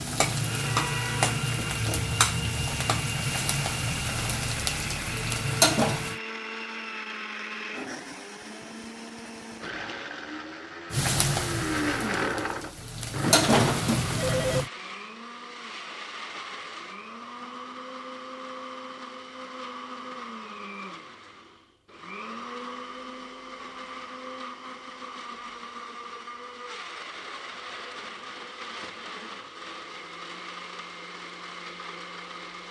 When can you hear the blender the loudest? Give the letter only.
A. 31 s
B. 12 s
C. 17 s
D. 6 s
B.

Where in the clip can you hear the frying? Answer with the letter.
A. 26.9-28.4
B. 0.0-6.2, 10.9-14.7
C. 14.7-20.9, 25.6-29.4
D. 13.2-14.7
B.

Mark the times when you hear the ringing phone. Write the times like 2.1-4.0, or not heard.
13.2-14.7.